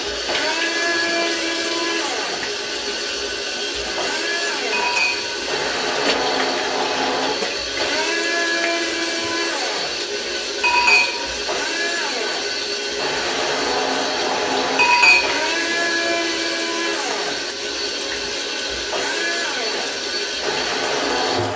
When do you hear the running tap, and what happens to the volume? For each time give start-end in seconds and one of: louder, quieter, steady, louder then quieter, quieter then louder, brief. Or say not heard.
0.0-21.5 steady.